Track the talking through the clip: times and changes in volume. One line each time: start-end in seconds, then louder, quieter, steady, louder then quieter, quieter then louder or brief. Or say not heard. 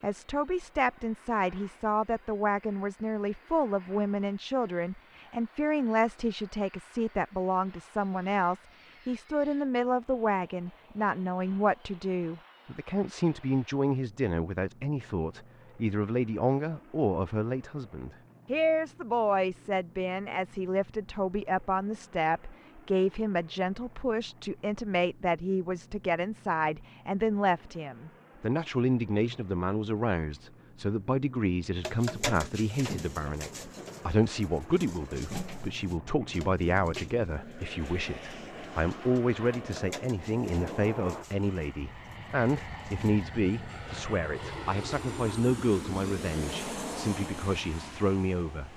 0.0-48.7 steady.